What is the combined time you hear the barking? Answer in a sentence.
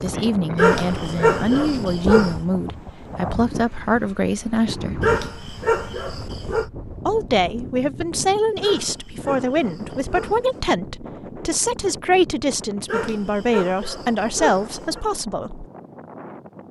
The barking can be heard for 8 seconds in total.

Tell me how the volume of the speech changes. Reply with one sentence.
The volume of the speech stays about the same.